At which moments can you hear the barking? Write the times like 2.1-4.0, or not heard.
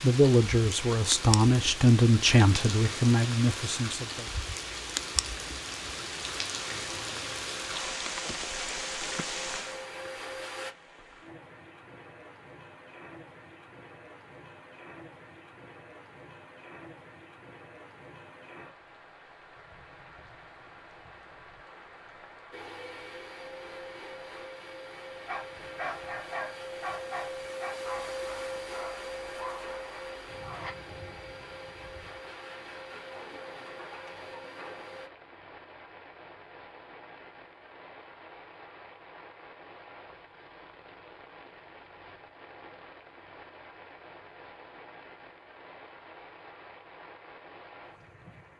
25.2-30.8.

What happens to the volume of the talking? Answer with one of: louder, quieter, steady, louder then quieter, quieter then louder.
louder then quieter.